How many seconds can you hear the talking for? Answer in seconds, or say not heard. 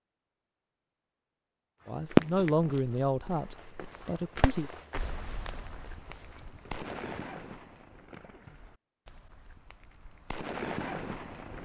3 s.